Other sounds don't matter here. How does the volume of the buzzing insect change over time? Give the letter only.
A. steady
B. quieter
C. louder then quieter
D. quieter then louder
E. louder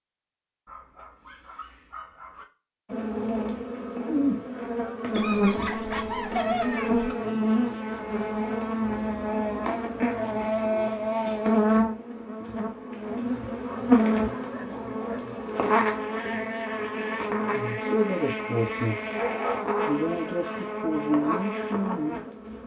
A.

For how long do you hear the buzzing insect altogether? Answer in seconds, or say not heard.
20 s.